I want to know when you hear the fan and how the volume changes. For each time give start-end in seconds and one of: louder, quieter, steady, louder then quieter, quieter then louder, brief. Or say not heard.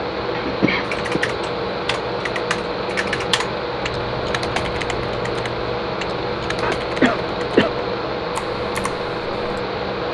0.0-10.0 steady.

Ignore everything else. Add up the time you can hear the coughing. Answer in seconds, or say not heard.
2 s.